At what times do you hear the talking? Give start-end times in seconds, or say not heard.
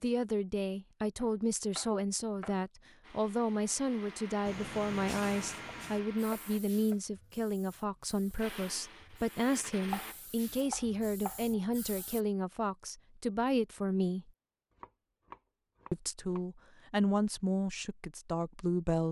0.0-14.3, 15.9-19.0.